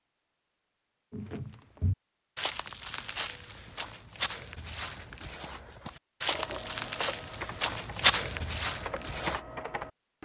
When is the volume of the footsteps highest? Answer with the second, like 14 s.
8 s.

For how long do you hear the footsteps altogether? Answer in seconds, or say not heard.
8 s.